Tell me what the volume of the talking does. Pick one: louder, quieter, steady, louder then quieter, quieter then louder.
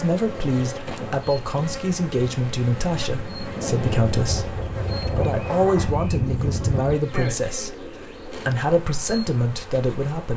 steady.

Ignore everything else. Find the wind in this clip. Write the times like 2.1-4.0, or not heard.
0.0-7.0.